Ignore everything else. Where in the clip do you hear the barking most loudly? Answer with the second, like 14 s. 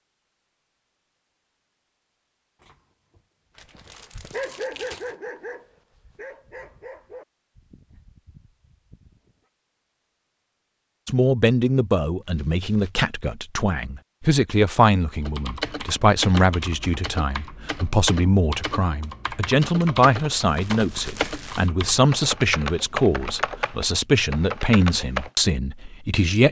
5 s.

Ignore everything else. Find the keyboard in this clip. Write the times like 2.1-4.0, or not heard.
15.2-25.3.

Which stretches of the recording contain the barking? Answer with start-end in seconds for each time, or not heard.
3.8-9.3.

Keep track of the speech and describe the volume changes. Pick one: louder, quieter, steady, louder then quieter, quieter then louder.
steady.